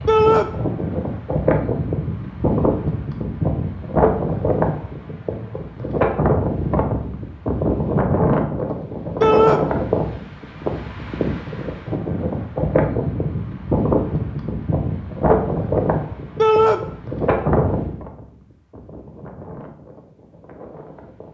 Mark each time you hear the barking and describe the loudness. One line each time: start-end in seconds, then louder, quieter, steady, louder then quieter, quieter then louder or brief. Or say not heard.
not heard.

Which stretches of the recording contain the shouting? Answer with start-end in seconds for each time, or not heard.
0.1-0.5, 9.2-9.6, 16.4-16.8.